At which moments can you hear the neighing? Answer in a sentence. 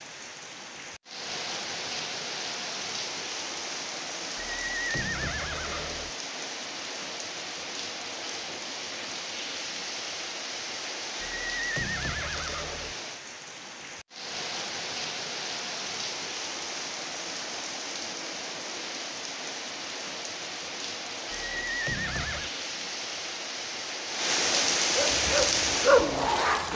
The neighing can be heard from 4.3 to 6.1 s, from 11.2 to 12.9 s and from 21.3 to 22.5 s.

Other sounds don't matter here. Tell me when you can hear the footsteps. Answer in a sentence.
The footsteps can't be heard in this clip.